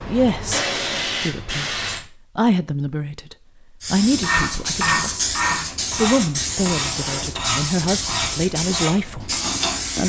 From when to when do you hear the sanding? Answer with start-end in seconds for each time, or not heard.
4.0-10.0.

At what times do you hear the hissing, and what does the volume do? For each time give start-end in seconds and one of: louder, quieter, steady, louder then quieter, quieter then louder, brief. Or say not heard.
0.0-2.0 brief
3.8-10.0 steady.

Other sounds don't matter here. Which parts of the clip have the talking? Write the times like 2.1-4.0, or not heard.
0.0-1.8, 2.4-5.3, 6.0-10.0.